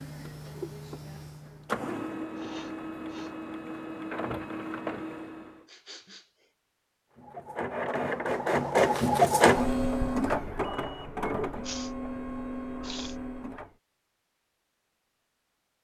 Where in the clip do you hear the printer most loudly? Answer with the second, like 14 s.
9 s.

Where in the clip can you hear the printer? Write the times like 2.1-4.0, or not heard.
0.0-5.7, 7.2-13.7.